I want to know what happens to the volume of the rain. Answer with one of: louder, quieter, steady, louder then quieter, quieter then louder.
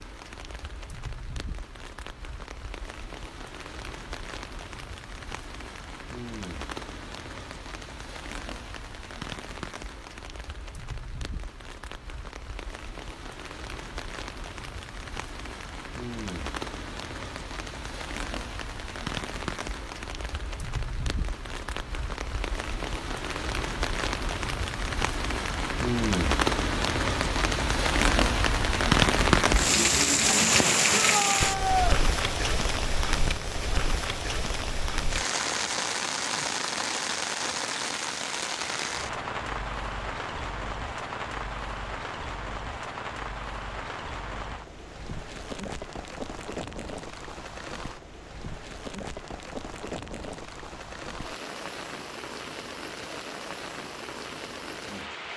louder then quieter.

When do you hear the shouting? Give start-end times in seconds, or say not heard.
30.9-32.0.